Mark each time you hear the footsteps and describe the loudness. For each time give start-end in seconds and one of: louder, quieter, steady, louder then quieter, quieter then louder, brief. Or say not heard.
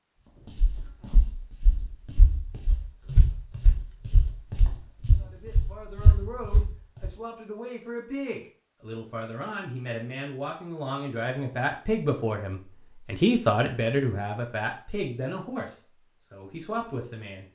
0.6-7.1 louder.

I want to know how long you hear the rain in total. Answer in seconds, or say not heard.
not heard.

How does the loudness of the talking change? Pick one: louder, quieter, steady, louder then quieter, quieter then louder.
louder then quieter.